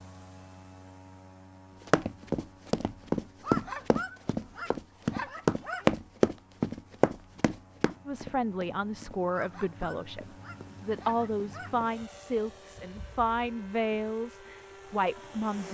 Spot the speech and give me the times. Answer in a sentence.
The speech can be heard from 8.1 to 15.7 s.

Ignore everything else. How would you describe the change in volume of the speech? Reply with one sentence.
The volume of the speech stays about the same.